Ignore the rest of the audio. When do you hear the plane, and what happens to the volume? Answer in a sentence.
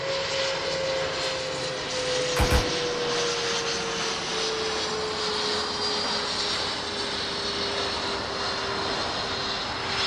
You can hear the plane from 0.0 to 10.0 s, at a steady volume.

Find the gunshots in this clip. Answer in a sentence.
You can hear the gunshots from 2.4 to 3.2 s.